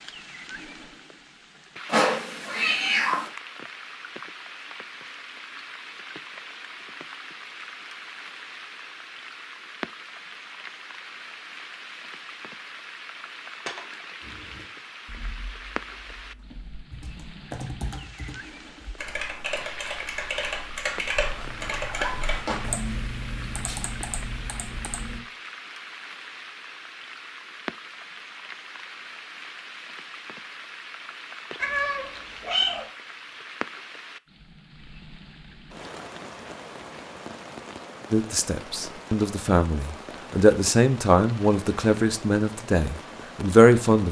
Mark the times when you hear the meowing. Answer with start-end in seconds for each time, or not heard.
1.9-3.3, 21.1-22.8, 31.6-32.9.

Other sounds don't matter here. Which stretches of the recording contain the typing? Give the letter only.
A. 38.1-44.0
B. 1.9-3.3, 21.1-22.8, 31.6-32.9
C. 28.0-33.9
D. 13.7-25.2
D.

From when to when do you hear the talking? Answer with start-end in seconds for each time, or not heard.
38.1-44.0.